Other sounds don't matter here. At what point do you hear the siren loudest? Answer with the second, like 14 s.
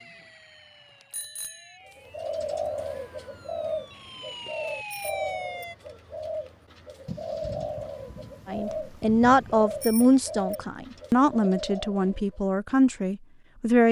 5 s.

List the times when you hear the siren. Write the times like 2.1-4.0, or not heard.
0.0-5.8.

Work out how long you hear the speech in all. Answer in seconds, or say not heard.
5 s.